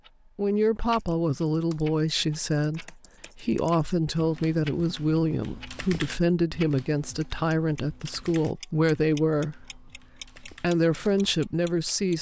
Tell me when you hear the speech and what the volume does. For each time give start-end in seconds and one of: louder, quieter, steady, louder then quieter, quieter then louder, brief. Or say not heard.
0.3-12.1 steady.